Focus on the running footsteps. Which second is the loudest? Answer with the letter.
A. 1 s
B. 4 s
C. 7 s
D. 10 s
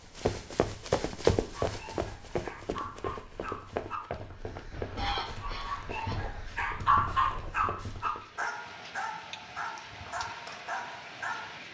A.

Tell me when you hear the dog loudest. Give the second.
7 s.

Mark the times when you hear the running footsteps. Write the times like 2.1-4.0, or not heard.
0.1-8.5.